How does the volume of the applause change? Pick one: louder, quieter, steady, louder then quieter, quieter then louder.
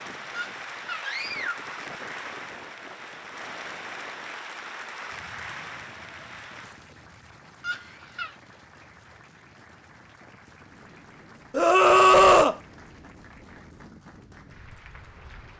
quieter.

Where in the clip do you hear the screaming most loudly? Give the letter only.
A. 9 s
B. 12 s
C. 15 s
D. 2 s
B.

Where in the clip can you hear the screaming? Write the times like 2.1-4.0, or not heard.
0.3-1.6, 7.6-8.3, 11.5-12.6.